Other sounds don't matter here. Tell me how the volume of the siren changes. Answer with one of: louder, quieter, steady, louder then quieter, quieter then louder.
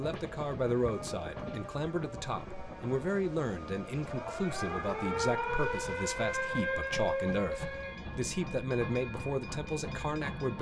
louder then quieter.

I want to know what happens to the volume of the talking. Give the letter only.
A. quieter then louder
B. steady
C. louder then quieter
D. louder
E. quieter
B.